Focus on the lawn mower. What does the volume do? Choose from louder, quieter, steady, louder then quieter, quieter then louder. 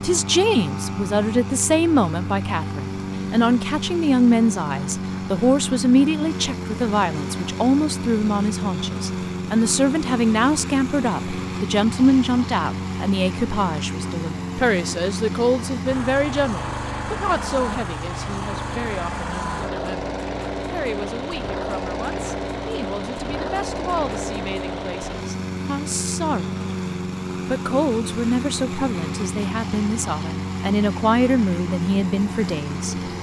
steady.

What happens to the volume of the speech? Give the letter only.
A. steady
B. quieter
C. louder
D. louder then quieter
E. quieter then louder
E.